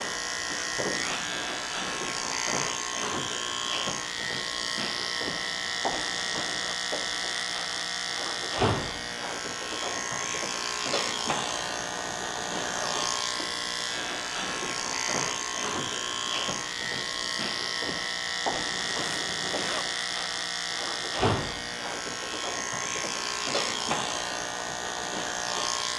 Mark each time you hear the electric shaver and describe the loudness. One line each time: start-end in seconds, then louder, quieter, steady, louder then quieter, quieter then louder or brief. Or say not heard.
0.0-25.9 steady.